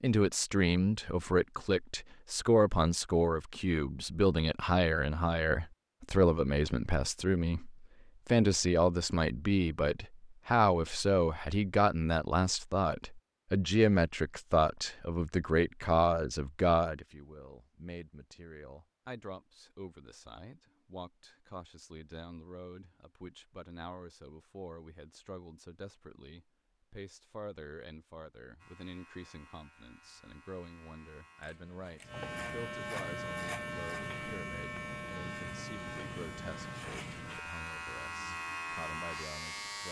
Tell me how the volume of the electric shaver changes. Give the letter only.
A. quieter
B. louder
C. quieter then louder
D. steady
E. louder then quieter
B.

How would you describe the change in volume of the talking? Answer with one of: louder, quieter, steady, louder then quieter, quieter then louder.
quieter.